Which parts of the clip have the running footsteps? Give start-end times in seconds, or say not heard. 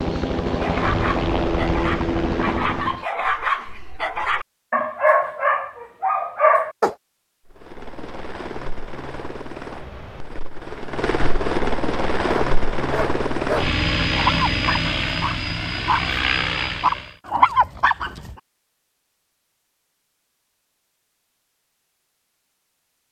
not heard.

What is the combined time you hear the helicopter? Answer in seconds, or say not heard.
13 s.